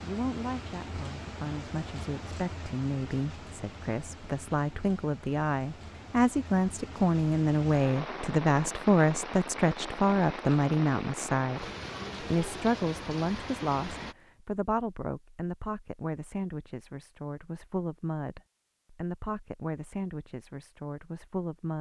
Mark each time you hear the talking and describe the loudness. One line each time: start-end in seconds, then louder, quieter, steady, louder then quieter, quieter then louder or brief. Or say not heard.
0.0-21.7 louder then quieter.